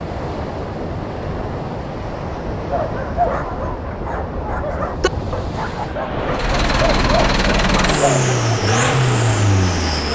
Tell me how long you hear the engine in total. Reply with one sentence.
The engine can be heard for 4 seconds in total.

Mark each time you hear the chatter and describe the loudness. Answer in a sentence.
You can't hear the chatter here.